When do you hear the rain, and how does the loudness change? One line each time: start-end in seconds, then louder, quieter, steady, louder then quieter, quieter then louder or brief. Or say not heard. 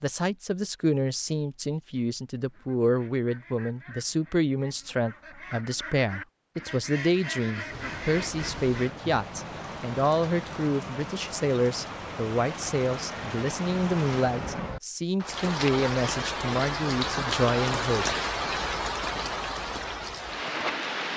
7.7-21.1 louder.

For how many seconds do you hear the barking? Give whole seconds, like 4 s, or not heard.
not heard.